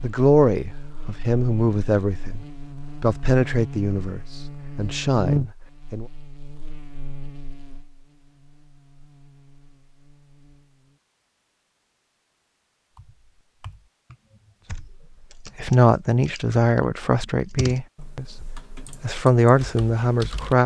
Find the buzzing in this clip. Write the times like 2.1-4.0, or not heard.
0.0-11.0.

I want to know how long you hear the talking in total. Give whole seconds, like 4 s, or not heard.
11 s.